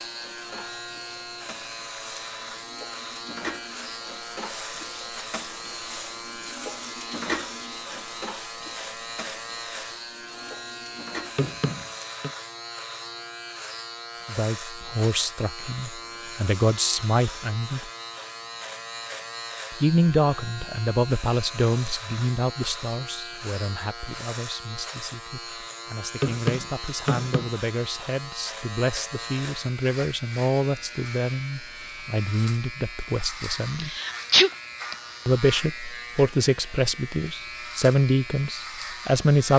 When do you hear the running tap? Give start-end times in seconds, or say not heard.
0.0-11.5.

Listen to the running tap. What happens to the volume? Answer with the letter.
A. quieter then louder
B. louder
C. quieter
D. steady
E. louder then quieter
E.